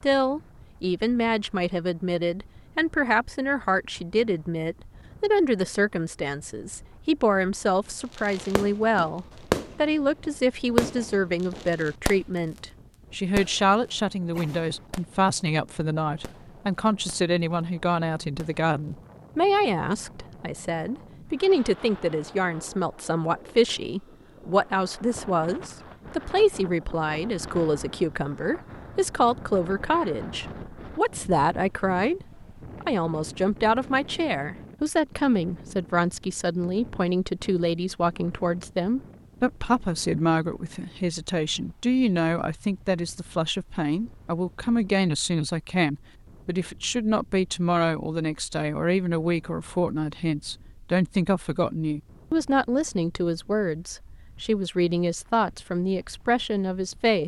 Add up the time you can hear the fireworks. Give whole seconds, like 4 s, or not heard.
7 s.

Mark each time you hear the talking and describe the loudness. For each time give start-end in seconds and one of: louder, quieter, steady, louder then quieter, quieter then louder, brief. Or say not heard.
0.0-57.2 steady.